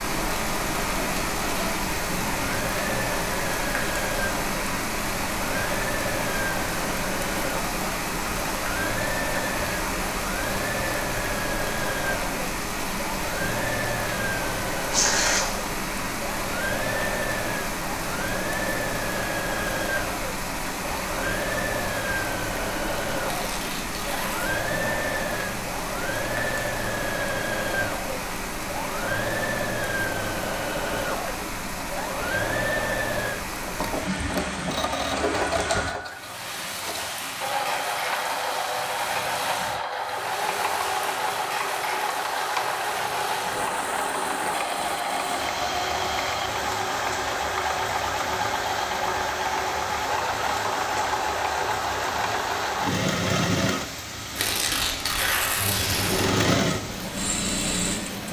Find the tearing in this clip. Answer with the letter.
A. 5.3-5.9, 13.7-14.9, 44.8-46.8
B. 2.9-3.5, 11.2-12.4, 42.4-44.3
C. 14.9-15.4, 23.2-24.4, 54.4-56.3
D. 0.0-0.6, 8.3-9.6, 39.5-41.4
C.